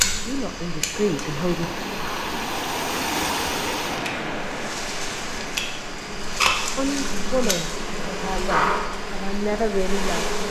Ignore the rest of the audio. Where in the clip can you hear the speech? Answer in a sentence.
The speech can be heard from 0.0 to 1.7 s and from 6.8 to 10.2 s.